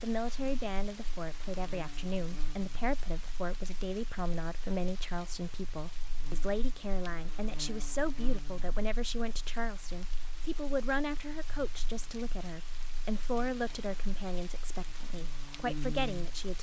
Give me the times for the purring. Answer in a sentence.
You can't hear the purring here.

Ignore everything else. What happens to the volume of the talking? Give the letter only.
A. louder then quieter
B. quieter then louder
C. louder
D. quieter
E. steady
E.